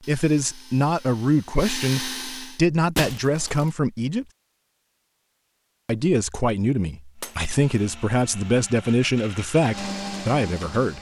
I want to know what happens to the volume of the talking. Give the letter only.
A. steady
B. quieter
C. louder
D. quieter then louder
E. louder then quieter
A.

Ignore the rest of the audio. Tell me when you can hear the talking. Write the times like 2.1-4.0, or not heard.
0.1-4.2, 5.8-10.9.